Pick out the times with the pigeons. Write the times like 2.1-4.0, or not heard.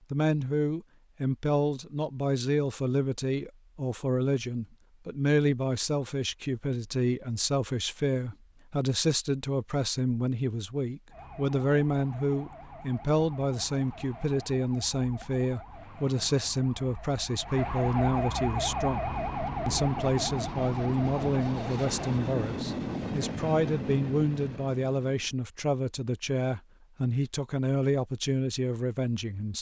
not heard.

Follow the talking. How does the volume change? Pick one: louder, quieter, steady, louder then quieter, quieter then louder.
steady.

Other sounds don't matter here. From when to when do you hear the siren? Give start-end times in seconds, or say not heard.
11.1-22.2.